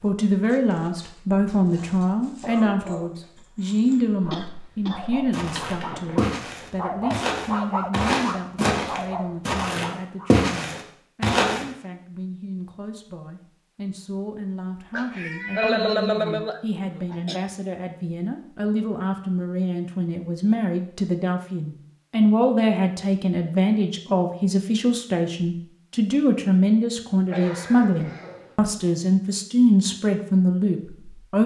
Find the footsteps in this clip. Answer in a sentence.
The footsteps can be heard from 5.3 to 11.7 s.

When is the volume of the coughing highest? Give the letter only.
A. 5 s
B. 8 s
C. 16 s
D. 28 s
C.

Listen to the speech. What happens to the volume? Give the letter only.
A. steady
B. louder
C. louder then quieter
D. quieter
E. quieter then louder
E.